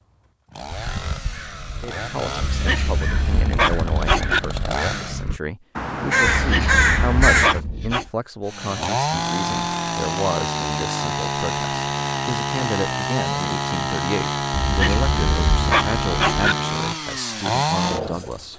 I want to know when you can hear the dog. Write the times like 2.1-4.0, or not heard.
2.4-4.4, 6.2-8.1, 14.6-16.6.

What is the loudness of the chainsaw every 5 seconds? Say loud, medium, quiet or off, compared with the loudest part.
medium, loud, loud, loud.